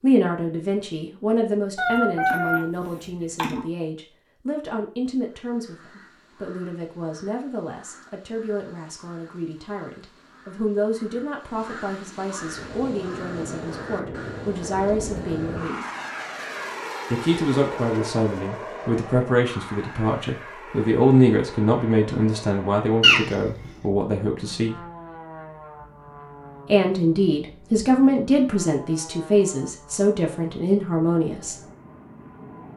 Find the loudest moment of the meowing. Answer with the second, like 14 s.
23 s.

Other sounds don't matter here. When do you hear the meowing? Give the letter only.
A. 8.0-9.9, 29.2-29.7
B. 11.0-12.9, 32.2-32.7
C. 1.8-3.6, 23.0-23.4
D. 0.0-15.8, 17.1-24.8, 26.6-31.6
C.